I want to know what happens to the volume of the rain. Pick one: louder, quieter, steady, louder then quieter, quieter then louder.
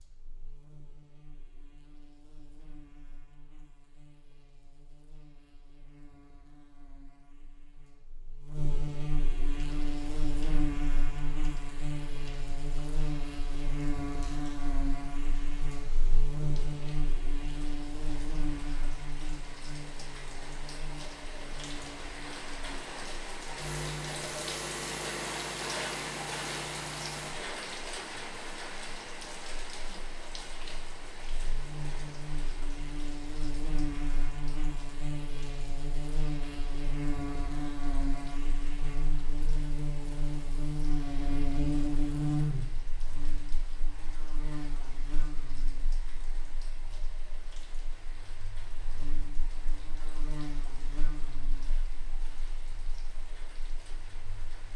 louder then quieter.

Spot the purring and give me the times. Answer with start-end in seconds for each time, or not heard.
not heard.